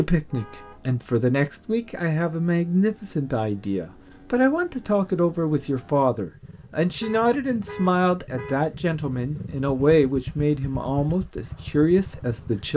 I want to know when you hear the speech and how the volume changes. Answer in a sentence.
You can hear the speech from 0.0 to 12.7 s, at a steady volume.